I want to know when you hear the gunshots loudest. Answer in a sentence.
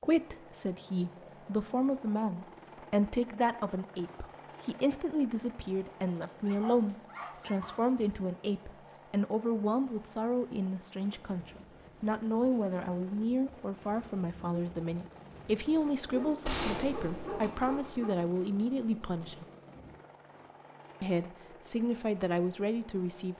The loudest moment of the gunshots is at 17 seconds.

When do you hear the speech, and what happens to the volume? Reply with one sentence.
You can hear the speech from 0.0 to 19.4 s, at a steady volume; and briefly from 21.0 to 23.3 s.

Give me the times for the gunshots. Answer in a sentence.
You can hear the gunshots from 16.4 to 17.9 s.